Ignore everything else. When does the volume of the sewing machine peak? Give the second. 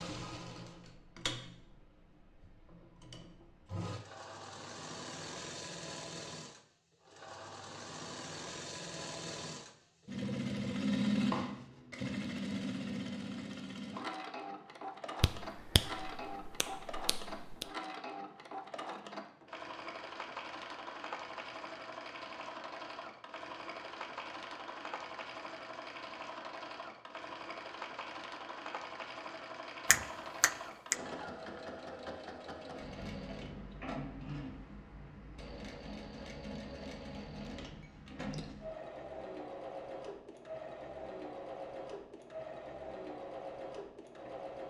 11 s.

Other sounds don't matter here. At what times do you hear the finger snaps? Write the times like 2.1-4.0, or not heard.
15.2-17.6, 29.9-30.9.